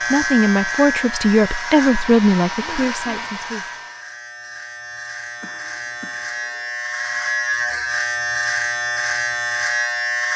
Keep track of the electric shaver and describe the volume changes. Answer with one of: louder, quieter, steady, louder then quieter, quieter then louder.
quieter then louder.